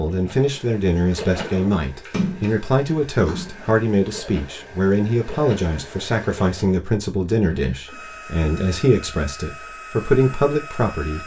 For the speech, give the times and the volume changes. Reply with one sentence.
The speech can be heard from 0.0 to 11.2 s, at a steady volume.